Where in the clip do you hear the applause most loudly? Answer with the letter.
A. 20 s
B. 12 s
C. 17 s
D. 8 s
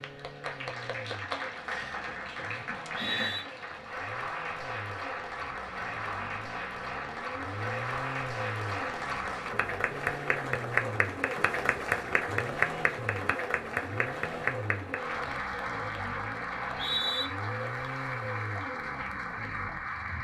B.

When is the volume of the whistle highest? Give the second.
17 s.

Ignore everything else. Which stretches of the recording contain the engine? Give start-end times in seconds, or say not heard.
0.0-20.1.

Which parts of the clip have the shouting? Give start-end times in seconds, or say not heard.
not heard.